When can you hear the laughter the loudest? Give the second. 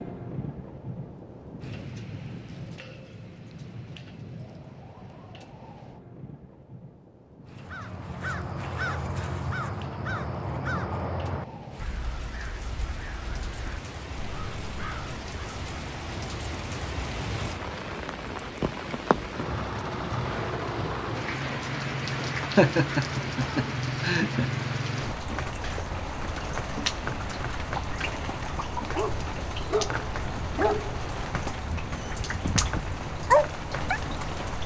23 s.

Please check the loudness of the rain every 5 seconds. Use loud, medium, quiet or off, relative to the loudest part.
medium, quiet, medium, loud, loud, loud, loud.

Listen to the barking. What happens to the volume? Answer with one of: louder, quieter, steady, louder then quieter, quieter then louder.
quieter then louder.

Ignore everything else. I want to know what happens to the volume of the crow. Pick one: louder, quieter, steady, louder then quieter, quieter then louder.
quieter.